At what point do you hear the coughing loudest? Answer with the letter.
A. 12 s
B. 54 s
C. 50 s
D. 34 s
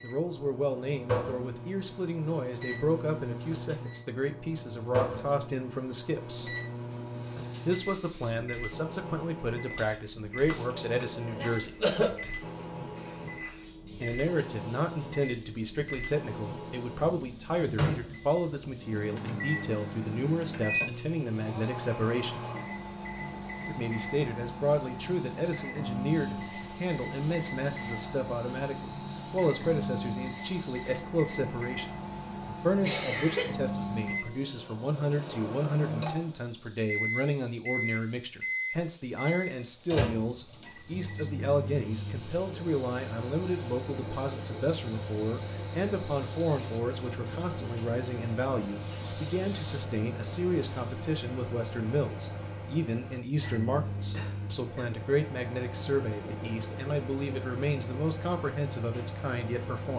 A.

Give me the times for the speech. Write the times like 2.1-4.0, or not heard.
0.0-6.5, 7.7-11.8, 14.0-22.4, 23.6-59.9.